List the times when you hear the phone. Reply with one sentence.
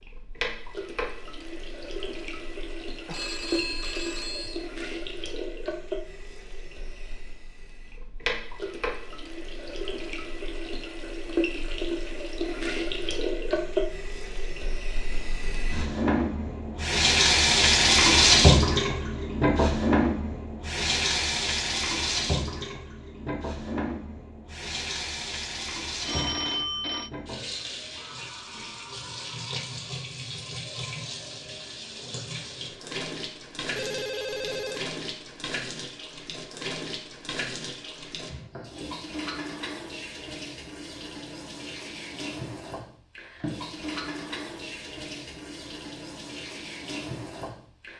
The phone can be heard from 3.0 to 4.7 s, from 26.1 to 27.1 s and from 33.8 to 34.9 s.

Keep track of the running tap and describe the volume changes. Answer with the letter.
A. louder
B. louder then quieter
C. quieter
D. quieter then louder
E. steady
B.